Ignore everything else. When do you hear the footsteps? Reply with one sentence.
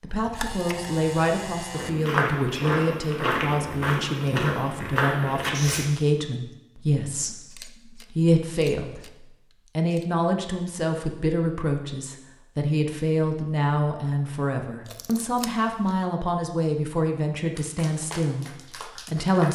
The footsteps can be heard from 1.8 to 5.8 s.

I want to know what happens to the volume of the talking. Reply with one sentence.
The loudness of the talking stays about the same.